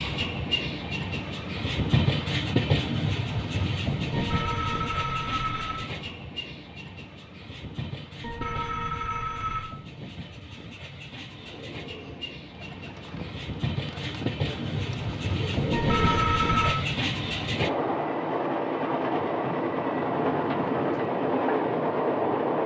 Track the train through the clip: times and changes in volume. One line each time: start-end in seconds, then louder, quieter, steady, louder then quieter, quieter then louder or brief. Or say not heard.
0.0-22.6 quieter then louder.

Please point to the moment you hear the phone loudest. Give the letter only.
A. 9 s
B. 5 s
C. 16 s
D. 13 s
C.